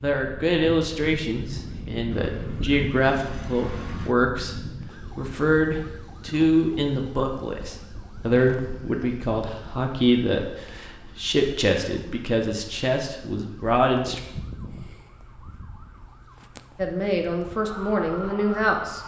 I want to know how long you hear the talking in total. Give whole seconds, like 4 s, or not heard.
16 s.